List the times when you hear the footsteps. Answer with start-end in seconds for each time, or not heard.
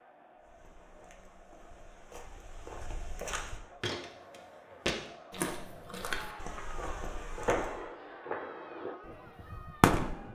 0.3-7.8.